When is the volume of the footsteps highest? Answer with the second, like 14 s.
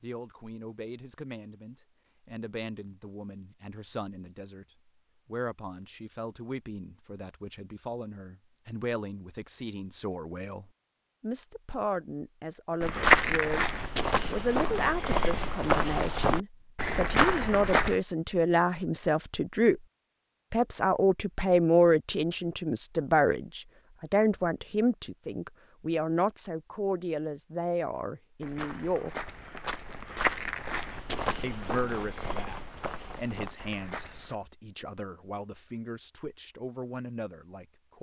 13 s.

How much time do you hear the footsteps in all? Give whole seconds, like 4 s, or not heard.
11 s.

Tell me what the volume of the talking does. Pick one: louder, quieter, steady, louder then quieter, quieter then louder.
louder then quieter.